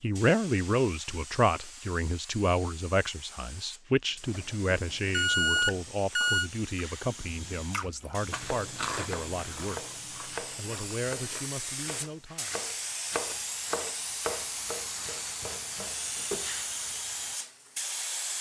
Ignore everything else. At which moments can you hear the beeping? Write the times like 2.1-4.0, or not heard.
5.1-6.5.